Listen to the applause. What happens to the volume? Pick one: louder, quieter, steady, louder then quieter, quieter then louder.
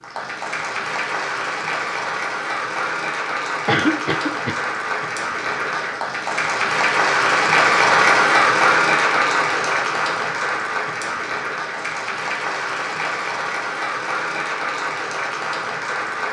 louder then quieter.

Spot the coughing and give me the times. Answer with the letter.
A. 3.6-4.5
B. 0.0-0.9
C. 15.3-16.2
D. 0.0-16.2
A.